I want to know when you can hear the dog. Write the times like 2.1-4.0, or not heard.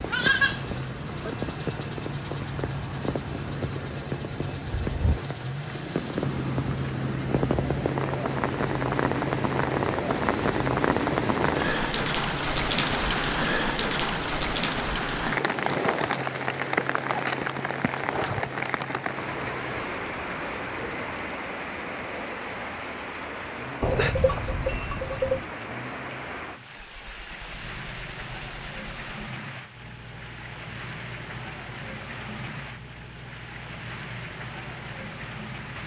not heard.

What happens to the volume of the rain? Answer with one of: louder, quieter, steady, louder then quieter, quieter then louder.
louder then quieter.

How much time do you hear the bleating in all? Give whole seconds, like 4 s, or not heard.
3 s.